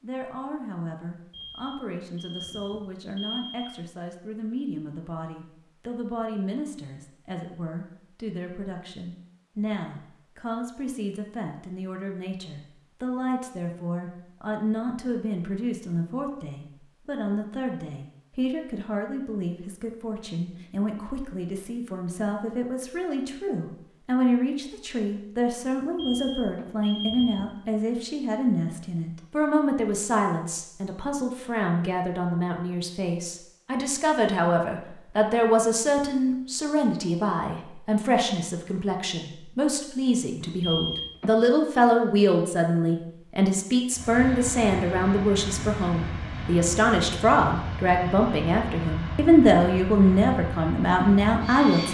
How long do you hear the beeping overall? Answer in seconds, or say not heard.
5 s.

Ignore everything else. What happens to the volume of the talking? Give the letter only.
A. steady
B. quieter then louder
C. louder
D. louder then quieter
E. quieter
C.